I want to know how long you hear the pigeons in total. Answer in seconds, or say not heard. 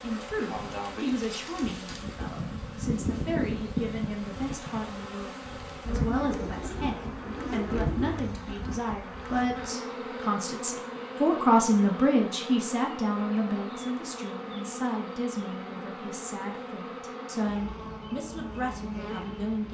2 s.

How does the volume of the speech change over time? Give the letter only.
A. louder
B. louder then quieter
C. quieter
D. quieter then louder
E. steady
B.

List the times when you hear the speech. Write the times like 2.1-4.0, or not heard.
0.0-19.6.